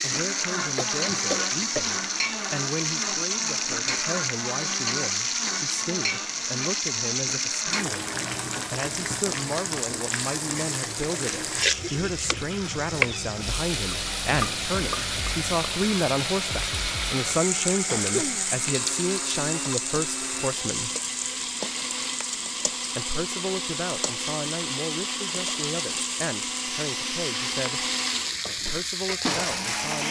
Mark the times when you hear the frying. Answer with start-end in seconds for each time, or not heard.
0.0-30.0.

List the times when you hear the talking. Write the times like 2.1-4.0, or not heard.
0.0-8.1, 8.7-20.9, 22.9-27.9, 28.6-30.0.